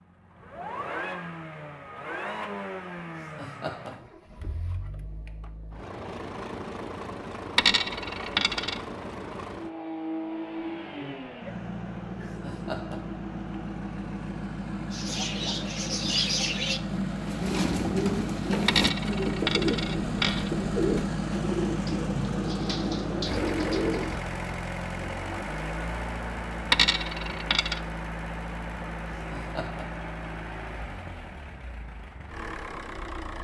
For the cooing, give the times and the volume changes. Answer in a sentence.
You can hear the cooing from 14.9 to 24.2 s, at a steady volume.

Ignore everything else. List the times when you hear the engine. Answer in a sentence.
You can hear the engine from 0.0 to 33.3 s.